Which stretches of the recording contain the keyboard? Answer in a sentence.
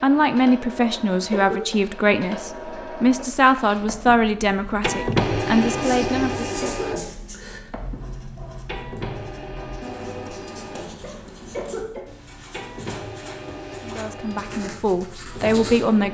The keyboard can't be heard in this clip.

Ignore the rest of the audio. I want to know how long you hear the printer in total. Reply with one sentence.
You can hear the printer for 16 seconds altogether.